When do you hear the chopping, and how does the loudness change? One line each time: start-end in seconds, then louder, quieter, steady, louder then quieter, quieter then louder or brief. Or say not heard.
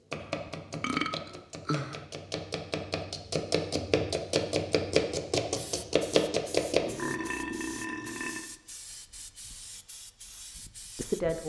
0.1-6.8 louder.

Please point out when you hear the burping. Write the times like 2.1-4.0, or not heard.
0.2-2.0, 6.8-8.5.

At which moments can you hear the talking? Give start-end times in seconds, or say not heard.
10.9-11.4.